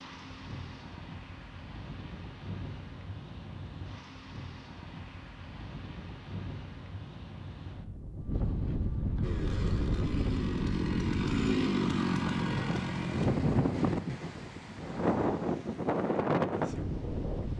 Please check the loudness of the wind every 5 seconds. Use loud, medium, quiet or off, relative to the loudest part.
quiet, medium, loud, loud.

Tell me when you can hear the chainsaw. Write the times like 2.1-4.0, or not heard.
9.2-13.3.